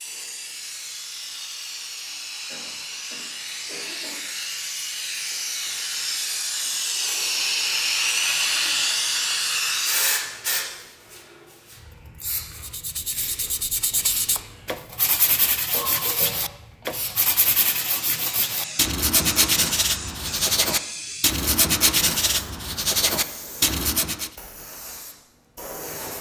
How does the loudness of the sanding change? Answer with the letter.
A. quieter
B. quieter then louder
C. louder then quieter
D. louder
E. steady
D.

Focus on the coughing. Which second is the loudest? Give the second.
16 s.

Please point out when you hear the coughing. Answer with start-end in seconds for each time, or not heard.
2.5-4.2, 15.7-16.6.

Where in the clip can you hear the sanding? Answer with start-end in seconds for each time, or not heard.
12.5-24.3.